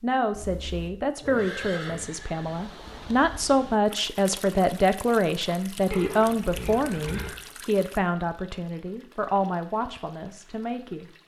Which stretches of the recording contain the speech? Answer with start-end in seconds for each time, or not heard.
0.0-11.1.